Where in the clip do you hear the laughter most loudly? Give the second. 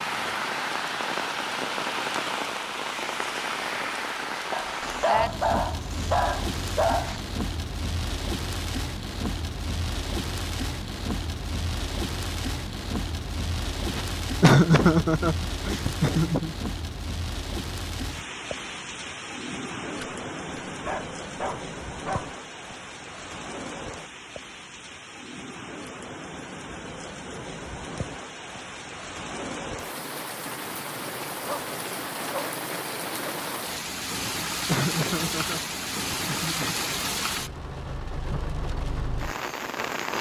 15 s.